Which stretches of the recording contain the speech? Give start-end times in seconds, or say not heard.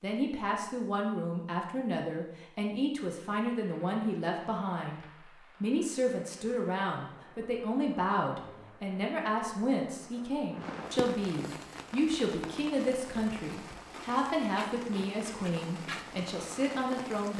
0.0-17.3.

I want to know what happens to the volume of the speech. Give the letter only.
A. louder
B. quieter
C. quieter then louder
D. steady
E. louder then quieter
D.